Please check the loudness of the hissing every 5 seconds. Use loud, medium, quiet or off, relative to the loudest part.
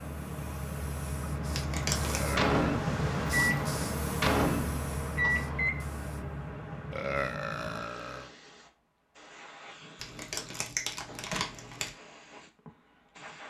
loud, medium, quiet.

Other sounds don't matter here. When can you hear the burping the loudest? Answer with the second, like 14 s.
7 s.